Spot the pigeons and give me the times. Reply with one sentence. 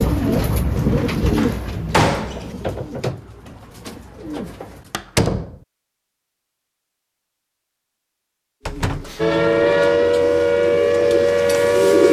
You can hear the pigeons from 0.0 to 5.0 s and from 8.6 to 12.0 s.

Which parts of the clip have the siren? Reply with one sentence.
You can hear the siren from 9.2 to 12.0 s.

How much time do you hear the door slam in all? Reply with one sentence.
You can hear the door slam for 3 seconds altogether.